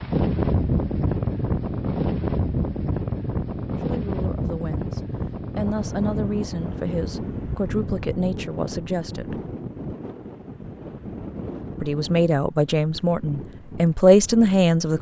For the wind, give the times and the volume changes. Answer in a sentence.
You can hear the wind from 0.0 to 14.9 s, getting quieter.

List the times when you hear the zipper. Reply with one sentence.
The zipper can't be heard in this clip.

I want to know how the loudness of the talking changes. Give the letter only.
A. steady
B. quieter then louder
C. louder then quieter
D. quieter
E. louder
E.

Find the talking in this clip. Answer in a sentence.
The talking can be heard from 3.7 to 9.3 s and from 11.8 to 14.9 s.